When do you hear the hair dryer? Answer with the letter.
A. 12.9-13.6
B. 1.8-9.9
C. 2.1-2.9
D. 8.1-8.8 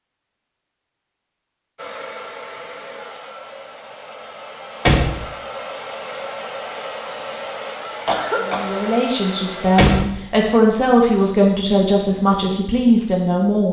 B.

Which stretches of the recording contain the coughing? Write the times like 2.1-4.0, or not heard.
8.1-8.8.